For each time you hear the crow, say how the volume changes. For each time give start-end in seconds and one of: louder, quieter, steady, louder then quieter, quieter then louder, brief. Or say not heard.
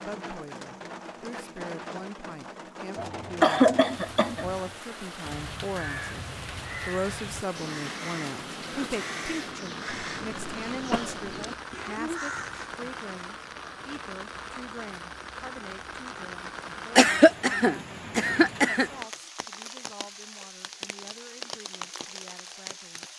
5.2-12.7 steady.